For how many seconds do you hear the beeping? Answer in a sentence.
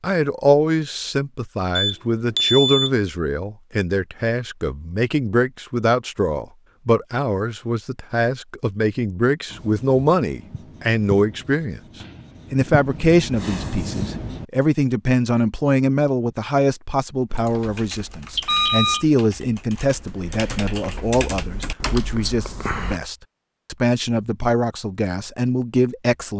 The beeping can be heard for 2 seconds in total.